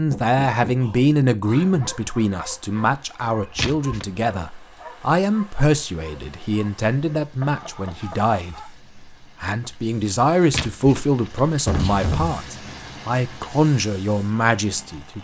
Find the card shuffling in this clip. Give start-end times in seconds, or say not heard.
3.5-4.1, 10.5-12.1.